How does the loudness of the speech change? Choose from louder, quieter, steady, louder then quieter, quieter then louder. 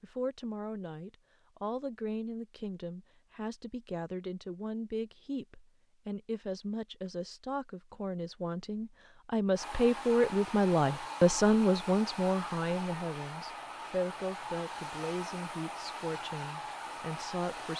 louder then quieter.